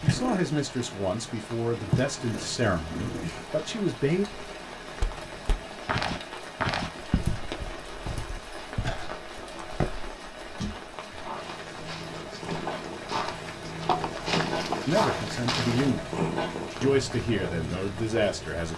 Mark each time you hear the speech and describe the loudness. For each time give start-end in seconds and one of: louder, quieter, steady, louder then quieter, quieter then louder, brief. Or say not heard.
0.0-4.2 steady
14.8-16.1 brief
16.8-18.7 brief.